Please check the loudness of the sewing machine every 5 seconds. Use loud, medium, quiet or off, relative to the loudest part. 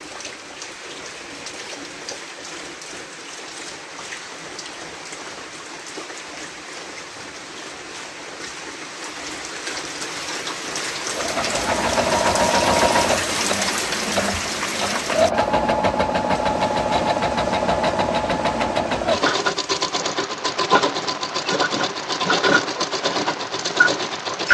off, off, loud, loud, loud.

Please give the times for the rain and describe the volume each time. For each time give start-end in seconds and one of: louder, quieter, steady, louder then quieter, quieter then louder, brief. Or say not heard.
0.0-24.4 louder then quieter.